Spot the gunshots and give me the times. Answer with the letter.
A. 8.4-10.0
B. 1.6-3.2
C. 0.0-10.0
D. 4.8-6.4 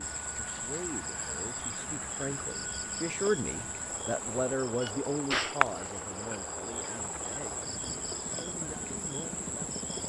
D.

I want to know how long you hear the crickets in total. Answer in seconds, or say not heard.
10 s.